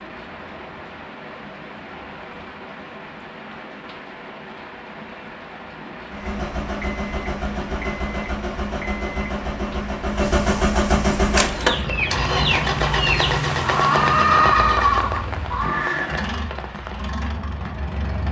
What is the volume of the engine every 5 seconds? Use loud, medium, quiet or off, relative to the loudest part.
off, medium, loud, medium.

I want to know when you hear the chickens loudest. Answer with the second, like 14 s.
14 s.